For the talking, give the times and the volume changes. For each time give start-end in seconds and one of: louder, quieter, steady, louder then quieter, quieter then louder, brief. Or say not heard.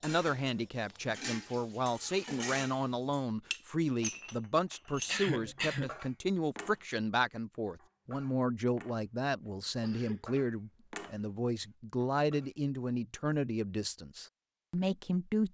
0.0-15.4 steady.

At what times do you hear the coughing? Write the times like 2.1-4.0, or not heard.
5.0-6.0, 9.8-10.4.